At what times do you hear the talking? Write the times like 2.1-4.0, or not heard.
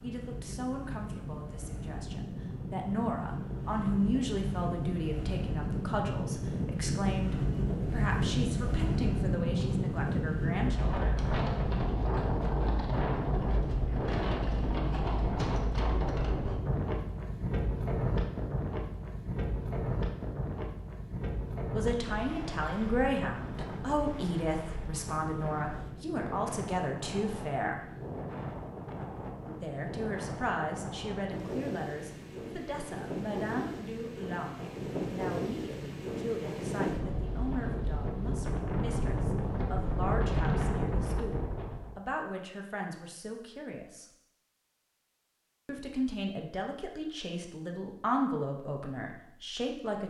0.0-11.1, 21.7-27.8, 29.6-44.0, 45.6-50.0.